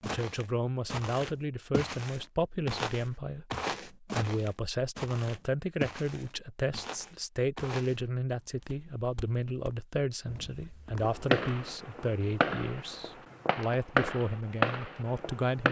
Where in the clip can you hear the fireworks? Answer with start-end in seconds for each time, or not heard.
11.0-15.6.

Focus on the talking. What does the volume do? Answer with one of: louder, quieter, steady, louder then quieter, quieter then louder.
steady.